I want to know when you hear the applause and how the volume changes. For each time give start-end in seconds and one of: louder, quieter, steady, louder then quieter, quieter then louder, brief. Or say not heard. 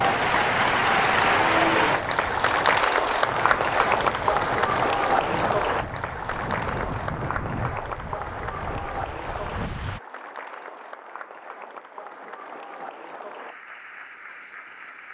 0.0-15.0 quieter.